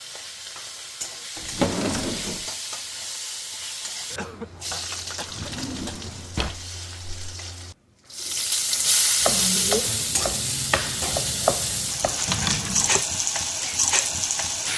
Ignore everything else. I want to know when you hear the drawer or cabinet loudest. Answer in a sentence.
The loudest moment of the drawer or cabinet is at 2 seconds.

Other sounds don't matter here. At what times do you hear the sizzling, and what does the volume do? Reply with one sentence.
The sizzling can be heard from 0.0 to 14.7 s, getting louder.